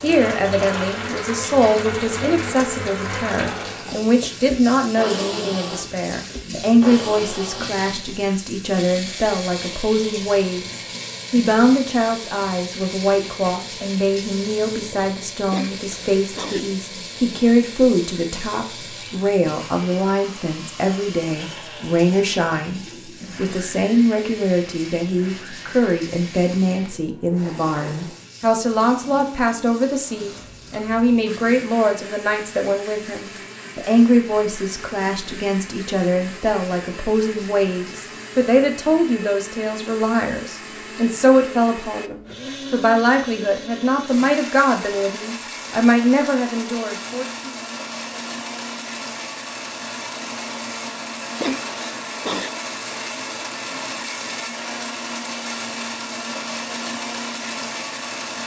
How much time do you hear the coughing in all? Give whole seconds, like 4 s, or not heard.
2 s.